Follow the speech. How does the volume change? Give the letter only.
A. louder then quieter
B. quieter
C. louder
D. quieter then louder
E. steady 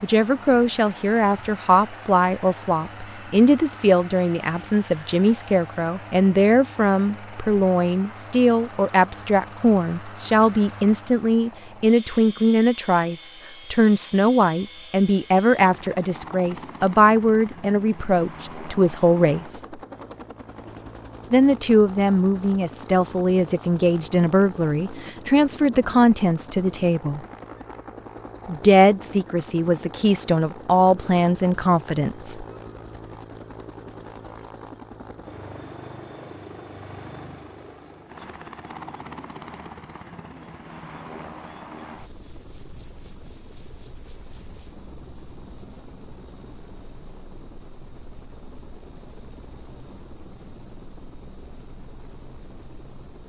E.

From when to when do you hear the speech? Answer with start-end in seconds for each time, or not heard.
0.0-19.6, 21.3-27.2, 28.4-32.5.